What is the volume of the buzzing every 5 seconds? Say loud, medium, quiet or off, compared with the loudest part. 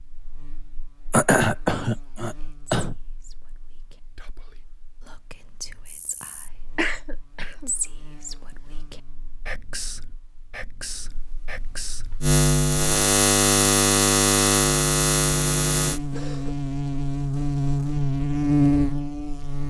quiet, quiet, loud, loud.